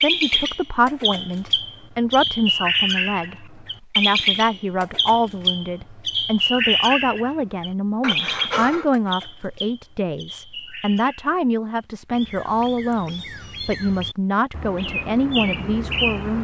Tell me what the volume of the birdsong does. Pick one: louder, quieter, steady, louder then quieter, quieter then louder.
quieter then louder.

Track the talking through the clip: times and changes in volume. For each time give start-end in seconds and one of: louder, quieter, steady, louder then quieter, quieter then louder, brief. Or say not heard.
0.0-16.3 steady.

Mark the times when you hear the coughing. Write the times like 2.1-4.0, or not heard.
8.0-8.9.